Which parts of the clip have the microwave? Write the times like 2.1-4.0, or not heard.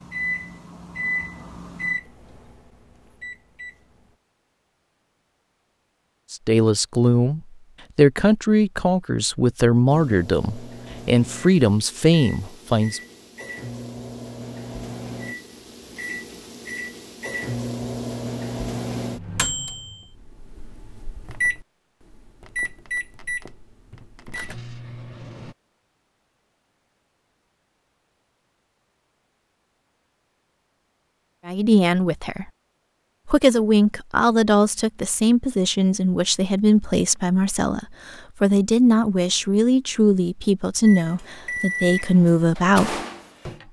0.0-4.1, 9.8-25.6, 40.8-43.6.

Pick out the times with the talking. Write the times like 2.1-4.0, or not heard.
6.3-13.0, 31.4-32.5, 33.2-43.0.